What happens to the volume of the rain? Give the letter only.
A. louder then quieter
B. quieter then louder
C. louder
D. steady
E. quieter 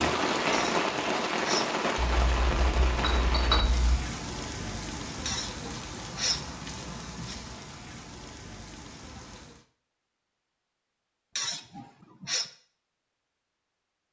E.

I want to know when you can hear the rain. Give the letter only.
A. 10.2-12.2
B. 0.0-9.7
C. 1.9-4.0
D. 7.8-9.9
B.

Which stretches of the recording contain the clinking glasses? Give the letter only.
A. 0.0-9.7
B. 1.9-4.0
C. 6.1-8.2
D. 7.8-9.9
B.